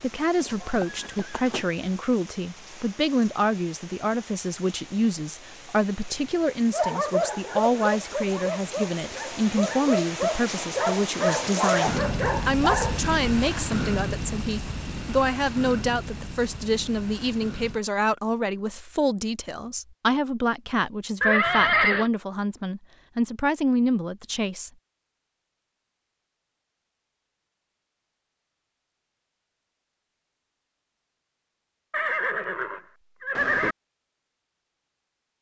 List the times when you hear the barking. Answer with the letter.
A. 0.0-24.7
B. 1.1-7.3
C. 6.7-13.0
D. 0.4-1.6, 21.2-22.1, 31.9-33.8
C.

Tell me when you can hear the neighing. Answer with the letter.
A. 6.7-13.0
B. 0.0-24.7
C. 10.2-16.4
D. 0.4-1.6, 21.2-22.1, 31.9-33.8
D.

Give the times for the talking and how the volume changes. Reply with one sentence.
The talking can be heard from 0.0 to 24.7 s, at a steady volume.